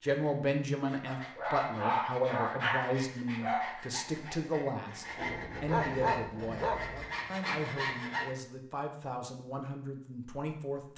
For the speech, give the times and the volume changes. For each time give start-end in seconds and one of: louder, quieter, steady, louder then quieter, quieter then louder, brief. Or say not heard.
0.0-10.9 quieter.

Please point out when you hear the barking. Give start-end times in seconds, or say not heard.
1.1-3.9, 5.7-7.0.